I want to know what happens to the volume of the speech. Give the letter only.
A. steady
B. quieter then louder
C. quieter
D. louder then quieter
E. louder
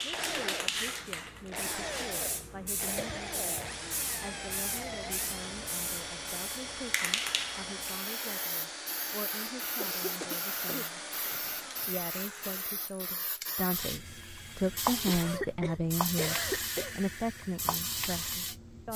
E.